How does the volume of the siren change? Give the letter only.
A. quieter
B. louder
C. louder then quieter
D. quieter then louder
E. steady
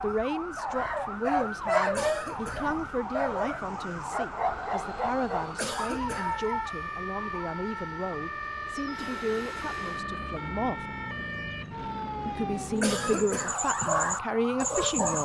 E.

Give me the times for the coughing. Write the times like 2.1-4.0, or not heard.
1.9-2.8, 5.5-6.4, 12.8-13.7.